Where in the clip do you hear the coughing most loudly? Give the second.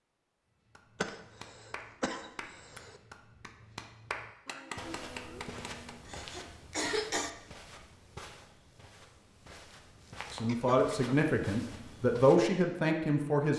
7 s.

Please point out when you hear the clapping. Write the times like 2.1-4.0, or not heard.
0.8-6.8.